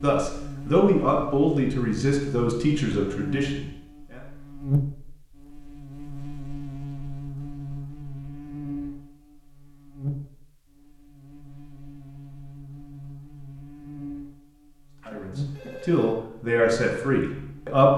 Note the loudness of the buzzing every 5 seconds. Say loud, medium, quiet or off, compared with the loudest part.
loud, medium, medium, medium.